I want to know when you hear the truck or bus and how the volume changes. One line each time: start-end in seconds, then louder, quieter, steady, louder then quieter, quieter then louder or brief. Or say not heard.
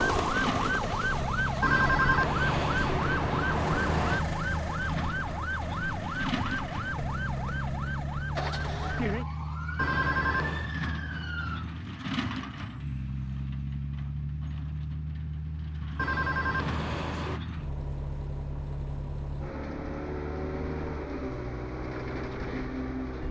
0.0-23.2 steady.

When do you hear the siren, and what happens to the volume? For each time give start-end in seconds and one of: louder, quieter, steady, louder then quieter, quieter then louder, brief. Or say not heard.
0.0-11.7 quieter.